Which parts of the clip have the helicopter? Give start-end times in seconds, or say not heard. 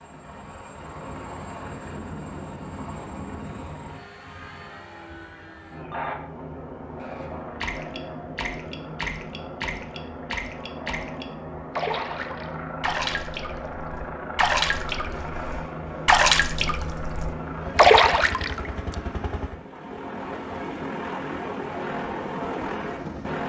0.0-23.4.